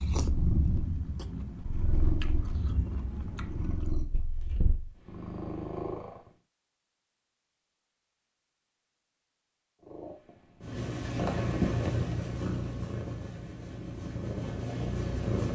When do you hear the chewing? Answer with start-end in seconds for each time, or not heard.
0.0-4.0.